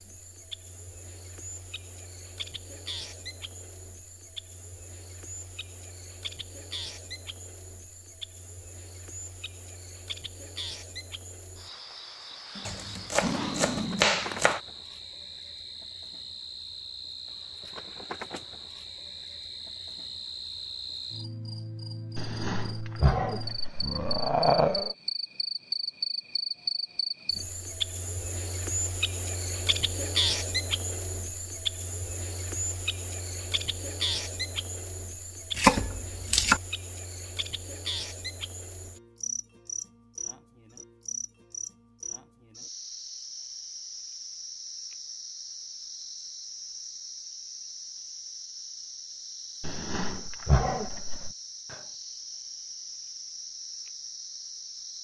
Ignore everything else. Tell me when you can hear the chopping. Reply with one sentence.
You can hear the chopping from 12.7 to 14.6 s and from 35.5 to 36.6 s.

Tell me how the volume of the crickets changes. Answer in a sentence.
The loudness of the crickets goes up, then down.